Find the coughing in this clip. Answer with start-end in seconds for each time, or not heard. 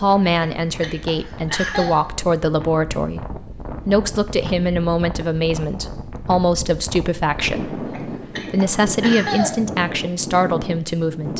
0.1-1.9, 7.6-9.5.